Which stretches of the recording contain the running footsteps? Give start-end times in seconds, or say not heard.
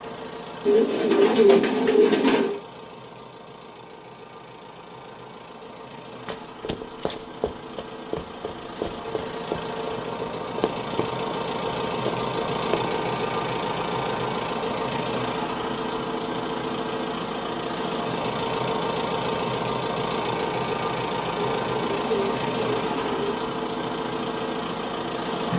6.2-12.9.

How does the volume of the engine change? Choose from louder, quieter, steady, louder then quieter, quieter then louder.
louder.